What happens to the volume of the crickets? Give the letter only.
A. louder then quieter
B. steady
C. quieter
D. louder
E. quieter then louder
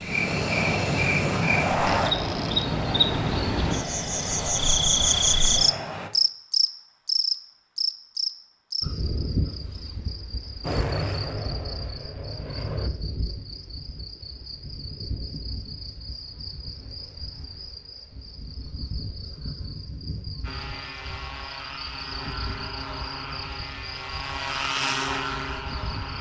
C.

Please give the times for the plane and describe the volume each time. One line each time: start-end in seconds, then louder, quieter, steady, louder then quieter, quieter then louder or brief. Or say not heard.
0.0-6.1 quieter
10.6-12.9 brief
20.4-26.1 louder.